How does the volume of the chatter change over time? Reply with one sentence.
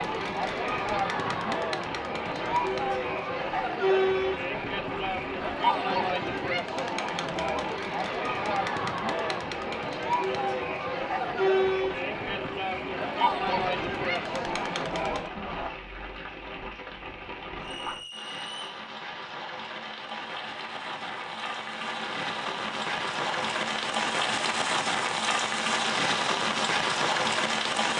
The loudness of the chatter stays about the same.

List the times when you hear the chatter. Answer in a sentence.
The chatter can be heard from 0.0 to 15.7 s.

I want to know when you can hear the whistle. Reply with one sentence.
The whistle can be heard from 17.6 to 18.8 s.